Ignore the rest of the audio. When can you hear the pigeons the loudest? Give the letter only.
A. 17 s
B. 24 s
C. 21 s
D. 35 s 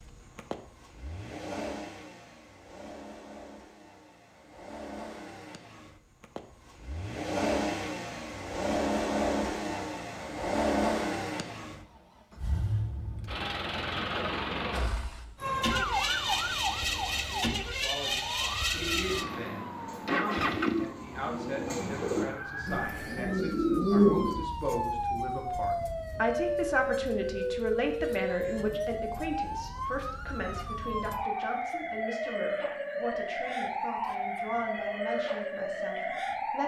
B.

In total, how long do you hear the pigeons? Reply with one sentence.
You can hear the pigeons for 6 seconds altogether.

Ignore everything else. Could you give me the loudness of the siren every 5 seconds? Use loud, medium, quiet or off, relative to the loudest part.
off, off, off, loud, medium, loud, loud, loud.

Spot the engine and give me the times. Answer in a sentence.
You can hear the engine from 0.0 to 20.9 s.